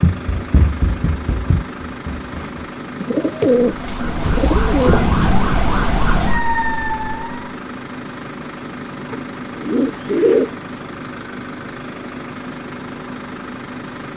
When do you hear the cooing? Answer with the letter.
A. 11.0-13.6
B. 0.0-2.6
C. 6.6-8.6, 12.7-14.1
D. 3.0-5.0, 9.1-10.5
D.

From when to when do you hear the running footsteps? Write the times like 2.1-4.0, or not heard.
0.0-2.6.